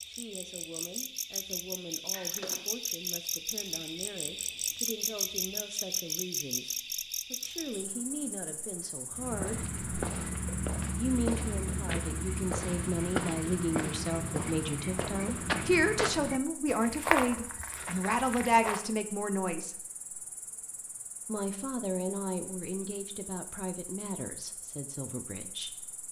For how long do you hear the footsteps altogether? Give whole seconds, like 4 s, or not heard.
10 s.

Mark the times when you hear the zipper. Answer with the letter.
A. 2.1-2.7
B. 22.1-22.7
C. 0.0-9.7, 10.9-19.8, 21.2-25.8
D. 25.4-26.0
A.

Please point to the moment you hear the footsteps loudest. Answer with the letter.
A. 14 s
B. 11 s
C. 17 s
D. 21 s
C.